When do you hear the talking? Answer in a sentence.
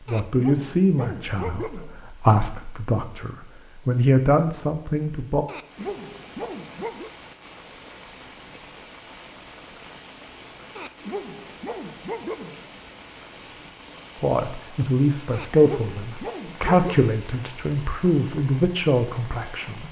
You can hear the talking from 0.1 to 5.5 s and from 14.2 to 19.8 s.